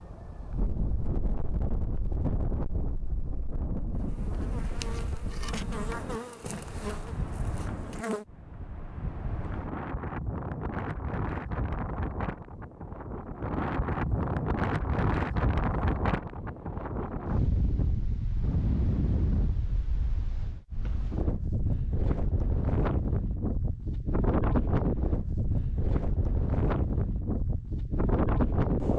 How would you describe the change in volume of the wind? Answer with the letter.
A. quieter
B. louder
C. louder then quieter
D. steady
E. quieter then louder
B.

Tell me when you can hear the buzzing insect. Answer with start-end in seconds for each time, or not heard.
4.0-8.2.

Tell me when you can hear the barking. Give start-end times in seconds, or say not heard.
not heard.